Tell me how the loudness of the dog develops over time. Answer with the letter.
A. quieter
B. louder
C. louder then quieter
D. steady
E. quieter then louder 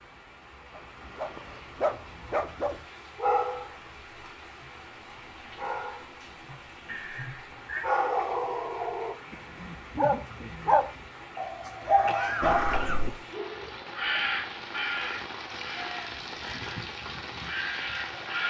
E.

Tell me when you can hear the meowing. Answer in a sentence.
You can hear the meowing from 6.8 to 7.8 s.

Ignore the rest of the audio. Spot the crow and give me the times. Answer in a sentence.
You can hear the crow from 11.8 to 18.4 s.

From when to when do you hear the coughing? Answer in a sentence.
You can hear the coughing from 12.1 to 13.1 s.